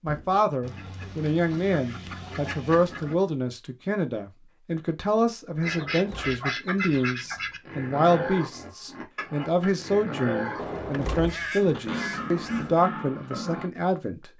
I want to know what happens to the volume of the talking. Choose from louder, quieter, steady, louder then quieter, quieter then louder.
steady.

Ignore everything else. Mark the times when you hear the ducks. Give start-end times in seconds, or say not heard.
0.6-3.2, 5.6-7.6, 11.2-12.8.